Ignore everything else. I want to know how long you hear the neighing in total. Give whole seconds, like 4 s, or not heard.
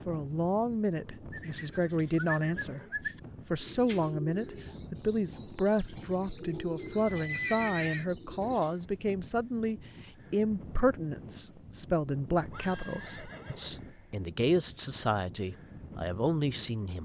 4 s.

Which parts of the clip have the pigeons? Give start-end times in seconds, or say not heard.
1.3-8.8.